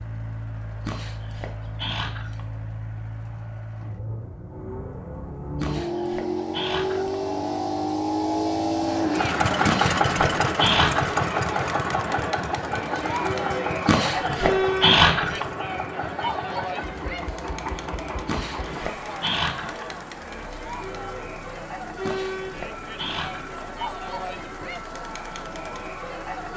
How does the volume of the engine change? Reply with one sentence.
The loudness of the engine goes up, then down.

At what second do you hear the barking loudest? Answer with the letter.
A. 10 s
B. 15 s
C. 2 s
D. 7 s
B.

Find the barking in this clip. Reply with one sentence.
You can hear the barking from 0.8 to 2.4 s, from 5.6 to 7.2 s, from 9.7 to 11.2 s, from 13.8 to 15.4 s, from 18.2 to 19.9 s and from 22.0 to 23.6 s.